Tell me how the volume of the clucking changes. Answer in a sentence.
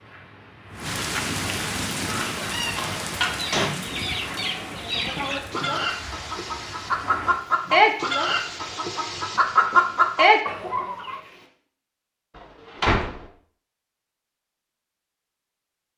The loudness of the clucking goes up.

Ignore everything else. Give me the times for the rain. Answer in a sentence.
The rain can be heard from 0.0 to 11.5 s.